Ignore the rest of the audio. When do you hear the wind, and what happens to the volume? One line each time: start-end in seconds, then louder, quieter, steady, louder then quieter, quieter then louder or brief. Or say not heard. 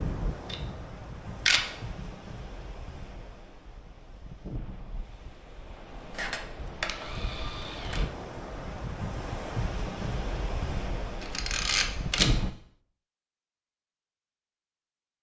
0.0-12.5 louder.